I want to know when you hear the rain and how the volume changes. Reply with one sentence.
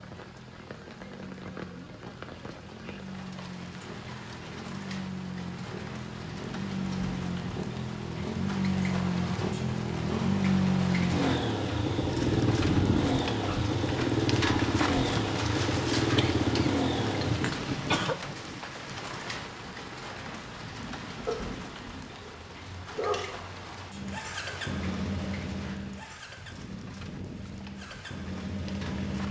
You can hear the rain from 0.0 to 29.2 s, getting louder then quieter.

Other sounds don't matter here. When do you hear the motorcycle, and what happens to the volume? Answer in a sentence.
You can hear the motorcycle from 0.0 to 17.6 s, getting louder; and from 23.9 to 29.2 s, getting quieter then louder.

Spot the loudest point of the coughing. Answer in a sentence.
The volume of the coughing peaks at 18 seconds.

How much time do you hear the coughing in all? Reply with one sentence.
You can hear the coughing for 2 seconds altogether.